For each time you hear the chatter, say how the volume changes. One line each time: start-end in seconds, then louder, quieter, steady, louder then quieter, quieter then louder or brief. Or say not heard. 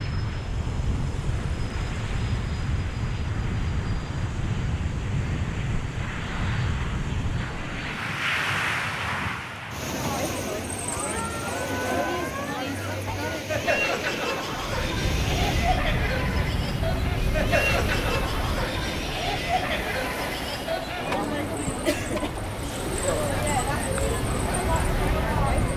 9.8-25.7 steady.